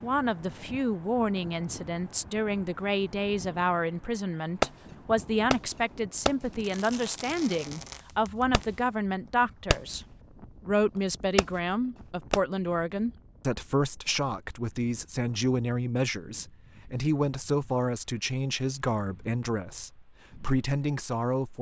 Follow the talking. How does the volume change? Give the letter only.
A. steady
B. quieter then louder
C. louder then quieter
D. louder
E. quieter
A.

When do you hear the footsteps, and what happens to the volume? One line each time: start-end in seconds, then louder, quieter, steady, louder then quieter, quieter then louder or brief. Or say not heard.
not heard.